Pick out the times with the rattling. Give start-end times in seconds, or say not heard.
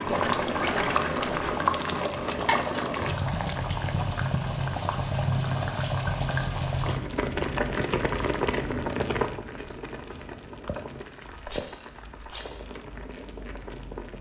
0.1-1.6, 5.8-6.8, 11.4-12.7.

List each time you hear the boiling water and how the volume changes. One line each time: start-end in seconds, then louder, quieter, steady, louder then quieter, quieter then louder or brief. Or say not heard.
0.0-14.1 quieter.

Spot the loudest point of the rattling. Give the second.
1 s.